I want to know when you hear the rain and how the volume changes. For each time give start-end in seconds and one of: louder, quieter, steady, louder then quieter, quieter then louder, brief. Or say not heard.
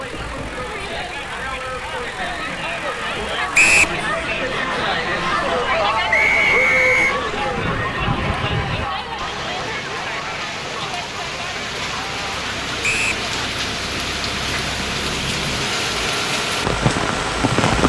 0.0-17.8 louder.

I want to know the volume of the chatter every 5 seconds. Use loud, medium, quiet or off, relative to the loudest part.
loud, loud, medium, off.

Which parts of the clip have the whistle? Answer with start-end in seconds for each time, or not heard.
3.5-4.0, 6.1-7.2, 12.8-13.2.